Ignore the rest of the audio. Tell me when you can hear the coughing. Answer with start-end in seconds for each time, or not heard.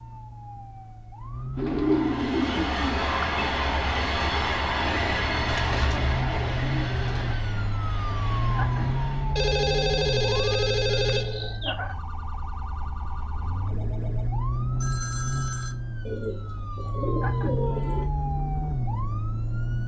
not heard.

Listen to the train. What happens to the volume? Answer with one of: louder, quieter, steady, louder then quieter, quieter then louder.
quieter.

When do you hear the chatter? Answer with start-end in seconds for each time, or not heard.
not heard.